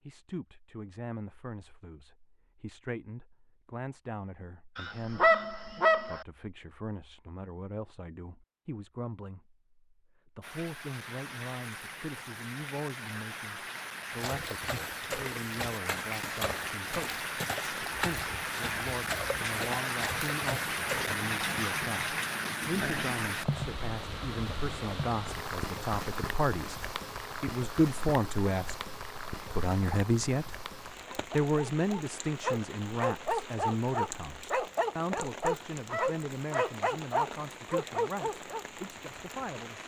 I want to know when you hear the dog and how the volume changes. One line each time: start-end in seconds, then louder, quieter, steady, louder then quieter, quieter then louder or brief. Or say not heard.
31.1-38.6 steady.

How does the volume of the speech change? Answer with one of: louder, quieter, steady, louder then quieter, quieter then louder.
louder then quieter.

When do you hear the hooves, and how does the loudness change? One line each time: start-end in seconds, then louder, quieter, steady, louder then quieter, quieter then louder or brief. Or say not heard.
14.1-21.1 steady.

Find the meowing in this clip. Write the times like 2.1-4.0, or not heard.
not heard.